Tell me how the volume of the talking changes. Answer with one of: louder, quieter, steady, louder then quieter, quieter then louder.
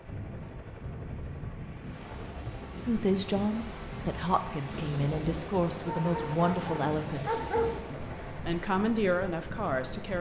quieter then louder.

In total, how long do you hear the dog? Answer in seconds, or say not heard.
2 s.